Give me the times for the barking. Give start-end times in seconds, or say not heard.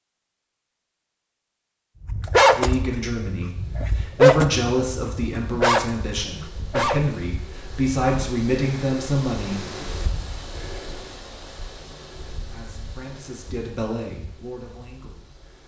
1.9-7.1.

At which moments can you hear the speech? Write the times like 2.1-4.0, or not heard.
2.5-9.7, 12.3-15.4.